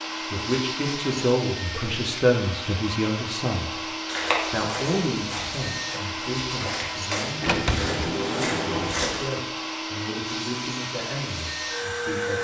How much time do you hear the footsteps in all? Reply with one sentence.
The footsteps can be heard for 5 seconds in total.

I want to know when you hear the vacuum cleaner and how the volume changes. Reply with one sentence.
You can hear the vacuum cleaner from 0.0 to 12.3 s, at a steady volume.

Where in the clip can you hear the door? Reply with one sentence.
The door can be heard from 7.4 to 9.1 s.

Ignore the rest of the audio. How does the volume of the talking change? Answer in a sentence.
The volume of the talking goes down.